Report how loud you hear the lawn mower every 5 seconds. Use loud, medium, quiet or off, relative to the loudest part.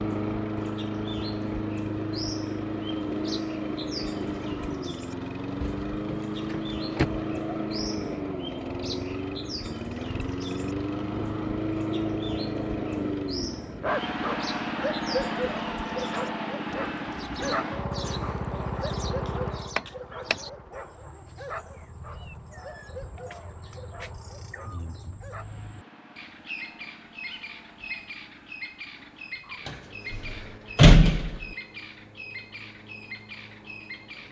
loud, loud, loud, loud, quiet, quiet, quiet.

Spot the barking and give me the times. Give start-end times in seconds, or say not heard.
13.8-25.6.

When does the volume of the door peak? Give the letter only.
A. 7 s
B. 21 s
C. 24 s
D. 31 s
D.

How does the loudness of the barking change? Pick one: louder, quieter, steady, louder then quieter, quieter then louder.
quieter.